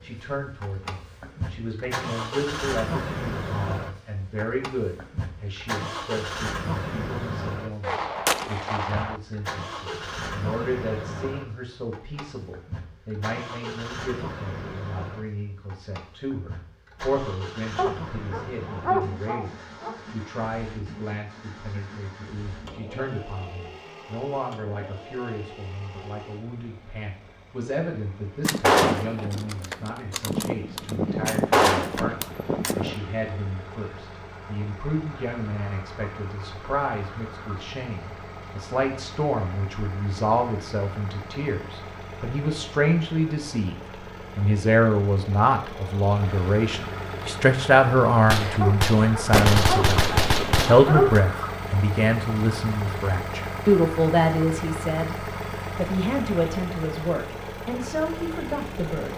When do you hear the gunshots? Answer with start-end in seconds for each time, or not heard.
7.8-9.2, 28.4-33.0, 48.2-51.0.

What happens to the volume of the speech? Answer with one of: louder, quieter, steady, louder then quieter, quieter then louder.
louder.